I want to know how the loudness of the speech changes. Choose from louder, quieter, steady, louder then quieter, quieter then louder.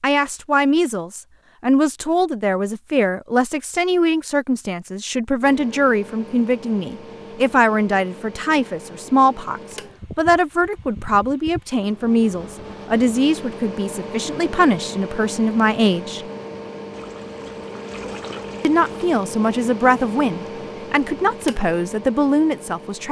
steady.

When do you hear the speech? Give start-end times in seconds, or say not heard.
0.0-16.2, 18.6-23.0.